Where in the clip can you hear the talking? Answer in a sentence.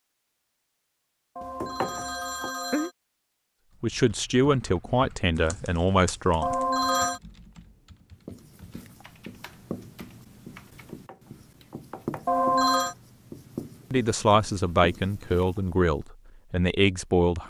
You can hear the talking from 3.8 to 6.5 s and from 13.9 to 17.4 s.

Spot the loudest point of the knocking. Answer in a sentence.
The loudest moment of the knocking is at 2 seconds.